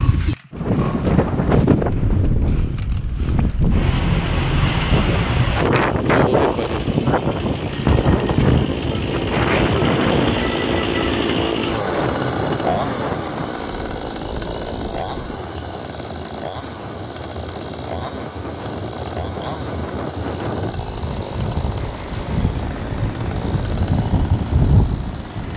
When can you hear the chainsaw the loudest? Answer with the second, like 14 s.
11 s.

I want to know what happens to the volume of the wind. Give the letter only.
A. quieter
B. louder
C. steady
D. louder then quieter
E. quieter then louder
E.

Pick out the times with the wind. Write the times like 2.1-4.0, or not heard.
0.0-25.5.